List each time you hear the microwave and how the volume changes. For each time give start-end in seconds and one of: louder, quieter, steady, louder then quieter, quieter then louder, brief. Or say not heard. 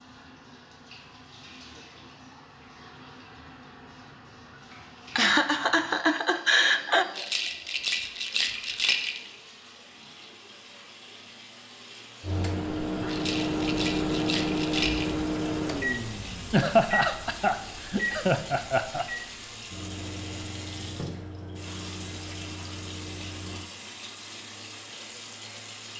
12.2-23.7 quieter.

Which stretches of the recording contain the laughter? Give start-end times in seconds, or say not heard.
5.2-7.0, 16.5-19.1.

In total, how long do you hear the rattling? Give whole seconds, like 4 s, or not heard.
4 s.